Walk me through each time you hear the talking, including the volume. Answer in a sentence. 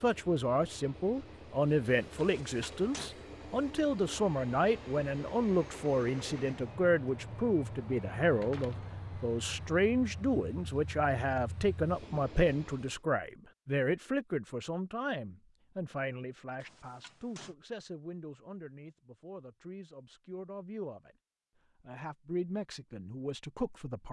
You can hear the talking from 0.0 to 21.1 s, getting quieter; and briefly from 21.8 to 24.0 s.